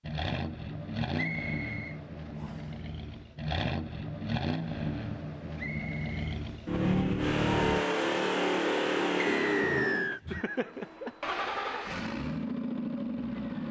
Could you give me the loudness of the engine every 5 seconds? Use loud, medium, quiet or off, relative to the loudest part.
medium, loud, medium.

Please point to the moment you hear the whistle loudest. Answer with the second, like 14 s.
10 s.